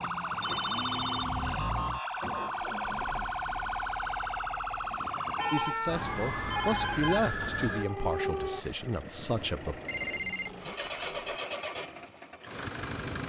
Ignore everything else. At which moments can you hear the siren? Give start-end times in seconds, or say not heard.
0.0-8.7.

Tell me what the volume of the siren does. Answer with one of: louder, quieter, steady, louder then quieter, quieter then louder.
steady.